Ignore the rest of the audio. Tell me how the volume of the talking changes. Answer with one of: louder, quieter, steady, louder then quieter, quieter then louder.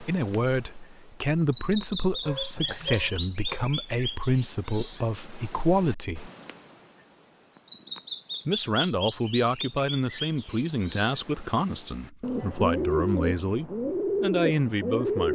steady.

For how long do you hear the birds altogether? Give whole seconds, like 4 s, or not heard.
15 s.